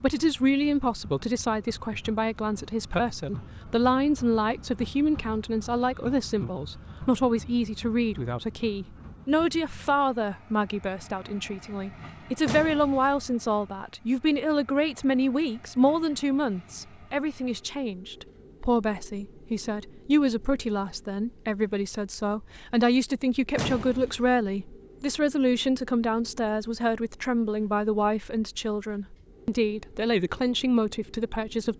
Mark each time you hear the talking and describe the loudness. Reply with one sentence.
The talking can be heard from 0.0 to 31.7 s, at a steady volume.